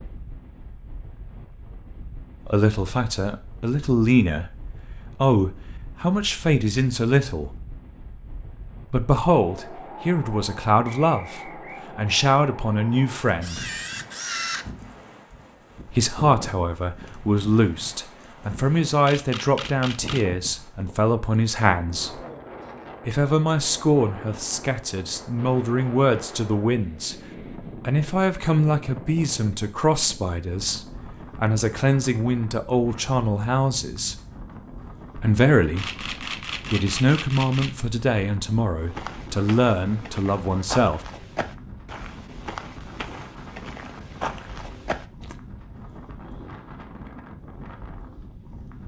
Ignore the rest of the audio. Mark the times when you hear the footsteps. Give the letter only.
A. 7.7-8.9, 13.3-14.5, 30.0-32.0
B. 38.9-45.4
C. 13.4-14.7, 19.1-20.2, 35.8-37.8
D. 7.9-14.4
B.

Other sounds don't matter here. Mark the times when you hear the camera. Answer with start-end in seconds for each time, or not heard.
13.4-14.7, 19.1-20.2, 35.8-37.8.